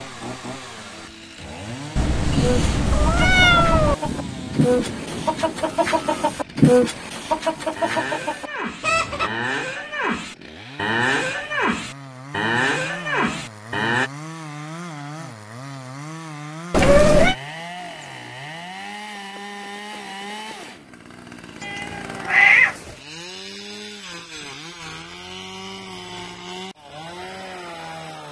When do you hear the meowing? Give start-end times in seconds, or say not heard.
1.9-4.0, 16.7-17.4, 21.6-22.8.